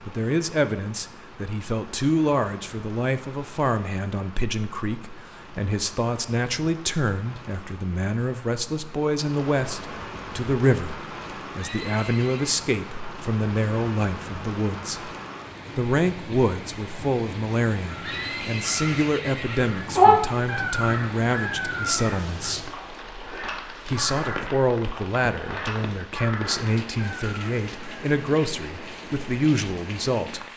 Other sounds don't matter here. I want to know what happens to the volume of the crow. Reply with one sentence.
The volume of the crow goes down.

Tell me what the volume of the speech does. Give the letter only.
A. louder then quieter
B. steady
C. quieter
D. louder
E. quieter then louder
B.